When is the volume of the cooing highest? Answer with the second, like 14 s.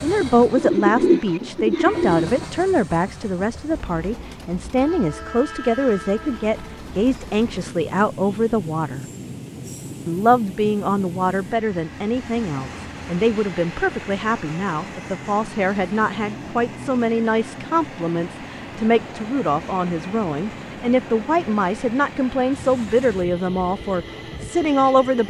1 s.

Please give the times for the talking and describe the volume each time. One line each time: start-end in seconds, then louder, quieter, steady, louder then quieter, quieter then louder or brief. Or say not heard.
0.0-9.1 steady
10.1-25.2 steady.